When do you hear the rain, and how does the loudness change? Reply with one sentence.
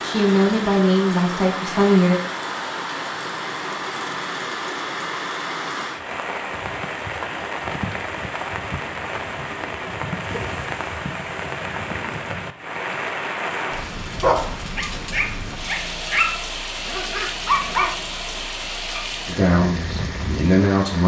You can hear the rain from 0.0 to 21.0 s, at a steady volume.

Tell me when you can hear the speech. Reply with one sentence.
You can hear the speech from 0.0 to 2.2 s and from 19.2 to 21.0 s.